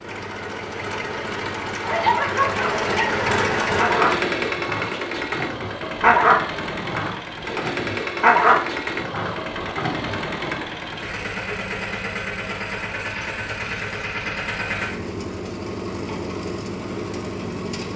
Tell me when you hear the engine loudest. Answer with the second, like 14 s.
4 s.